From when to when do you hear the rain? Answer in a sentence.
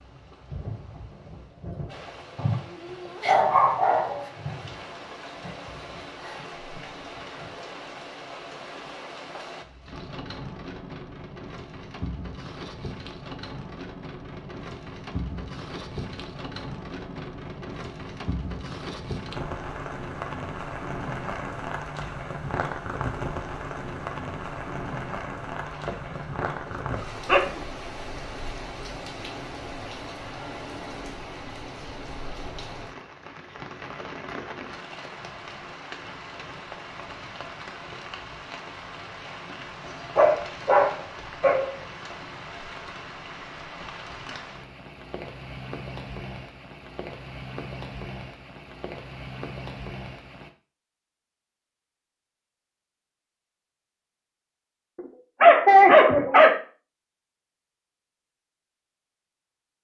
You can hear the rain from 0.0 to 50.5 s.